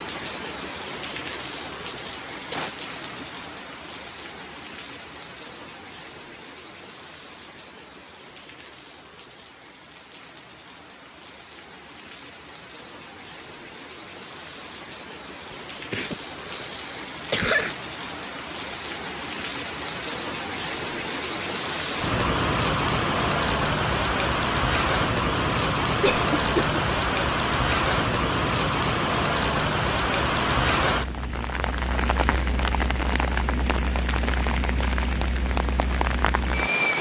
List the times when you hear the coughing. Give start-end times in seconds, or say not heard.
2.5-3.2, 15.9-17.8, 26.0-26.8.